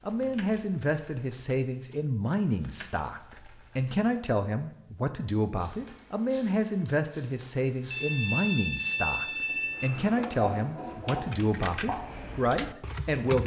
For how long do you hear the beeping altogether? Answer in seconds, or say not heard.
2 s.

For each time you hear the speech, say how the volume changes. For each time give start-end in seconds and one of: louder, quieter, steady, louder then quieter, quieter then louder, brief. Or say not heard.
0.1-13.4 steady.